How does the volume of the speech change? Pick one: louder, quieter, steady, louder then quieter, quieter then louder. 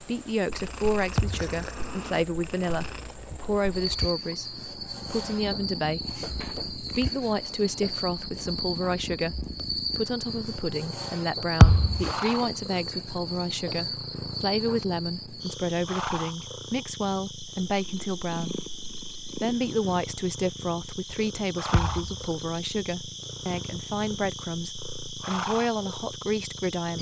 steady.